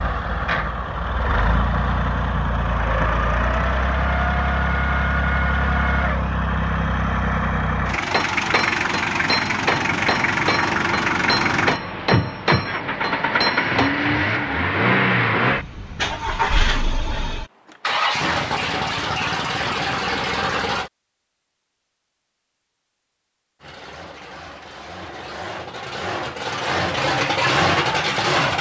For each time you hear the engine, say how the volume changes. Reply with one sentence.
You can hear the engine from 0.0 to 20.9 s, at a steady volume; and from 23.6 to 28.5 s, getting louder.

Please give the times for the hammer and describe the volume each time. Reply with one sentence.
The hammer can be heard from 8.0 to 13.9 s, at a steady volume.